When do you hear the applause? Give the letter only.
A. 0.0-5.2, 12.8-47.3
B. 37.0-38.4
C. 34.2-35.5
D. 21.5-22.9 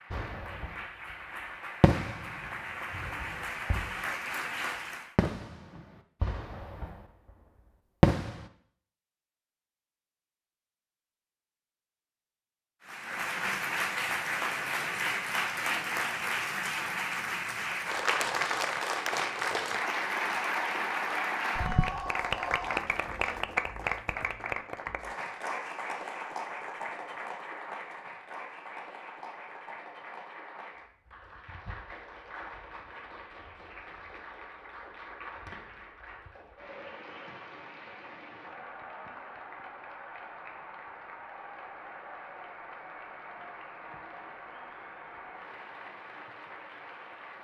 A.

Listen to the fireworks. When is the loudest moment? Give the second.
8 s.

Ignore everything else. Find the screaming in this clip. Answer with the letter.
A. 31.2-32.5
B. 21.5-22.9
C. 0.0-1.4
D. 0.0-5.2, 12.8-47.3
B.